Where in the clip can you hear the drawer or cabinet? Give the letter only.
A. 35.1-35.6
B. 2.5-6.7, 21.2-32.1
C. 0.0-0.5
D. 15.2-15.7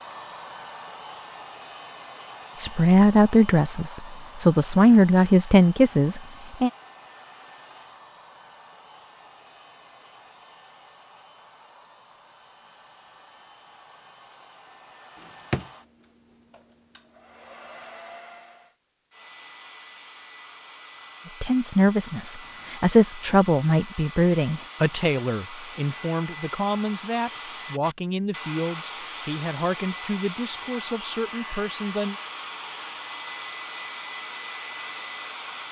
D.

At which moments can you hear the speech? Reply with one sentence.
You can hear the speech from 2.5 to 6.7 s and from 21.2 to 32.1 s.